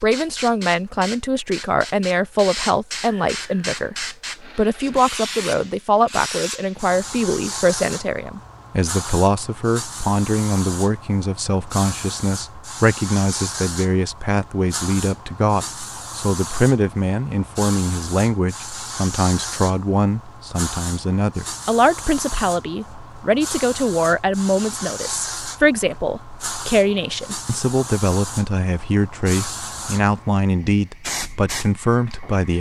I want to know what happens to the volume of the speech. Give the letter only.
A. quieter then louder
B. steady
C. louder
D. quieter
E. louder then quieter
B.